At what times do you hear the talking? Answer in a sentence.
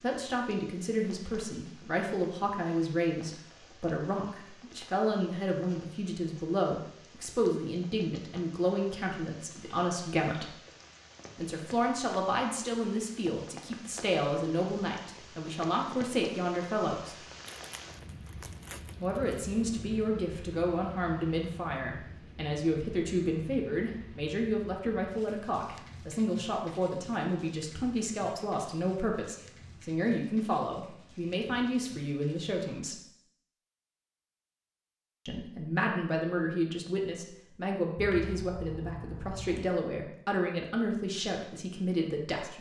You can hear the talking from 0.0 to 10.6 s, from 11.3 to 17.1 s, from 19.0 to 33.0 s and from 35.2 to 42.5 s.